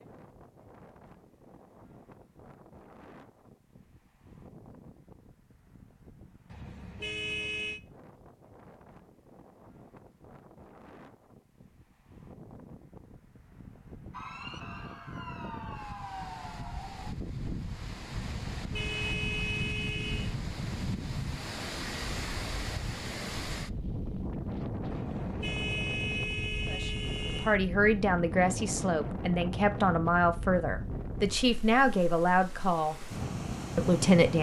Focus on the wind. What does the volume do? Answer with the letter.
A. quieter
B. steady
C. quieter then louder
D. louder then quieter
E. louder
E.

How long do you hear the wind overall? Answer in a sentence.
You can hear the wind for 34 seconds altogether.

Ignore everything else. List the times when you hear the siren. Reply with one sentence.
The siren can be heard from 14.1 to 17.1 s.